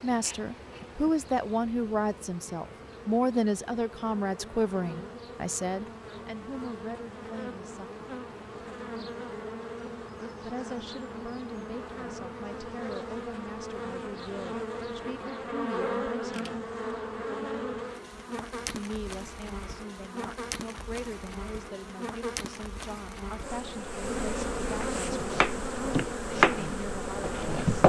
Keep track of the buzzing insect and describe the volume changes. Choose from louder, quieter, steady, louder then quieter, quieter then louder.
louder.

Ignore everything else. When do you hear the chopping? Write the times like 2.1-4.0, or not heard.
24.8-27.8.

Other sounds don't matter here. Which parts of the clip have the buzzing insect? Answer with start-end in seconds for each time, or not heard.
0.0-27.8.